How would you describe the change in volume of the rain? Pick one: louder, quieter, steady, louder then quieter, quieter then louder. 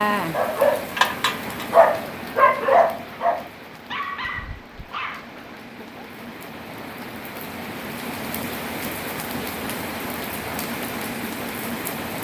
quieter then louder.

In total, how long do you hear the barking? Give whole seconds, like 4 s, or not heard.
6 s.